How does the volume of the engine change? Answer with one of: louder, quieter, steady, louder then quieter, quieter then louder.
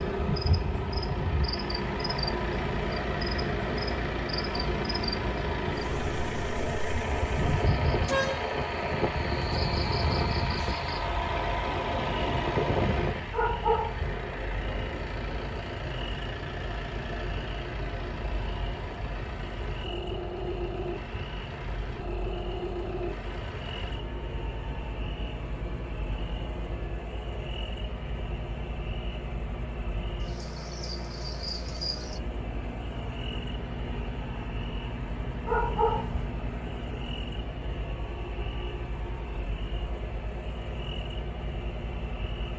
quieter.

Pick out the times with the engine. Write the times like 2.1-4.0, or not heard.
0.0-42.5.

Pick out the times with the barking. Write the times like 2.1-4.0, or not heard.
13.3-14.2, 35.5-36.2.